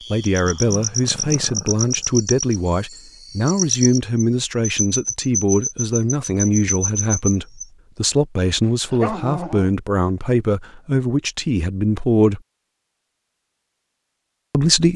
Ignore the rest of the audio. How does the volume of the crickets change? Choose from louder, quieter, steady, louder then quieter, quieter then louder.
steady.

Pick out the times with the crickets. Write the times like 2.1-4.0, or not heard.
0.0-7.7.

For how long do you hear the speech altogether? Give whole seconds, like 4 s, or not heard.
13 s.